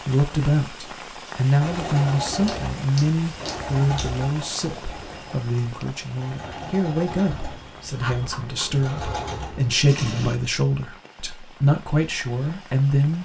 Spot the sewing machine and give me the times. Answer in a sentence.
You can hear the sewing machine from 1.6 to 10.3 s.